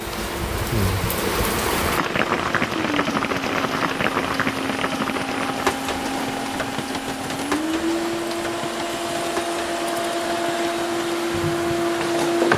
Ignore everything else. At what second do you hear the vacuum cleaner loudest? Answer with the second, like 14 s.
12 s.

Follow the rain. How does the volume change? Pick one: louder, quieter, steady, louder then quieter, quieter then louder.
quieter.